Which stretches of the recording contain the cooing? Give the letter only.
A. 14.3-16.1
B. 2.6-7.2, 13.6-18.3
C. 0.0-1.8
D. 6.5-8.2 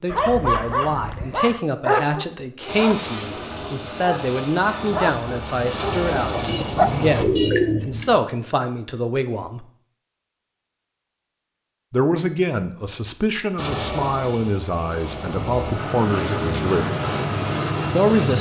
D.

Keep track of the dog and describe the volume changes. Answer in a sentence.
The loudness of the dog goes down, then up.